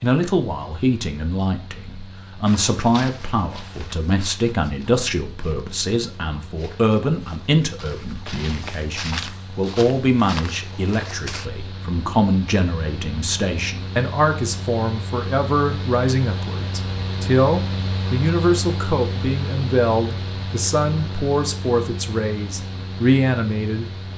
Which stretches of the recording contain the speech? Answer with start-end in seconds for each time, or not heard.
0.0-23.9.